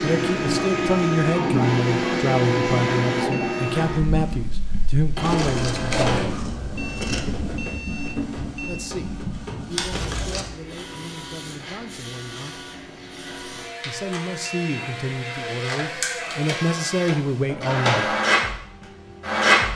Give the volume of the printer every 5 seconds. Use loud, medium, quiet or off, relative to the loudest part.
loud, medium, quiet, loud.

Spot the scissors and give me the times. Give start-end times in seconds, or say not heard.
5.2-7.2, 9.9-10.5.